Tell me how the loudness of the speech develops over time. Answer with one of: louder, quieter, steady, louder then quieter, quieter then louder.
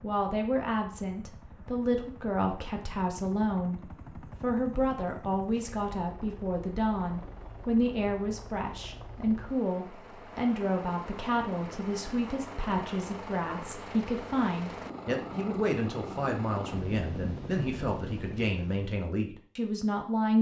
steady.